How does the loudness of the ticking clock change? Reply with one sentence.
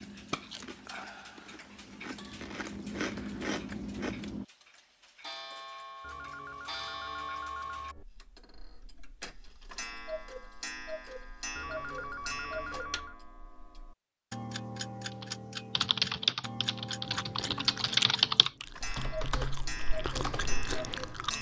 The volume of the ticking clock goes up.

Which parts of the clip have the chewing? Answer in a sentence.
The chewing can be heard from 0.0 to 4.5 s and from 17.1 to 21.3 s.